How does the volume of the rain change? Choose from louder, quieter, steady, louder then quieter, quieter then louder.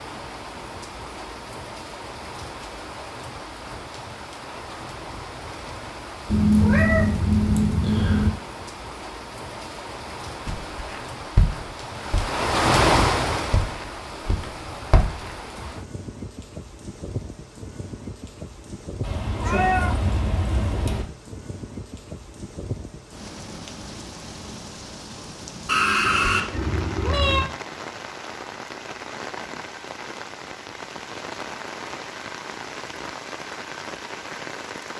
louder then quieter.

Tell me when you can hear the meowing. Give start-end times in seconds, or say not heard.
6.2-8.3, 19.0-21.1, 25.6-27.5.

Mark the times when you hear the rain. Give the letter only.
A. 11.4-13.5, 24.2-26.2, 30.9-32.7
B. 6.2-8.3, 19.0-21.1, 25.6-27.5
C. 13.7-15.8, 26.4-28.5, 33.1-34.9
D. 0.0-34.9
D.